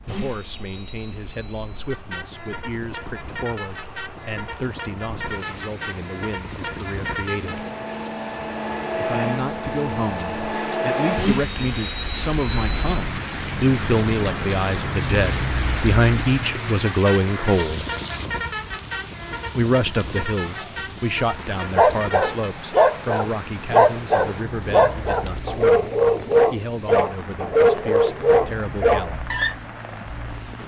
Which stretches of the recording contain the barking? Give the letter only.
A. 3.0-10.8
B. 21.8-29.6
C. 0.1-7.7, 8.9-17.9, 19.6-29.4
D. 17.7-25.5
B.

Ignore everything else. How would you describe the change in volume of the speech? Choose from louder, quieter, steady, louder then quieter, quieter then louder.
louder then quieter.